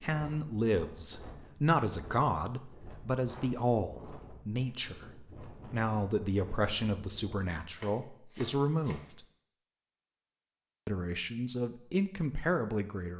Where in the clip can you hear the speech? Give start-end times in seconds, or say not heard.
0.0-9.2, 10.8-13.1.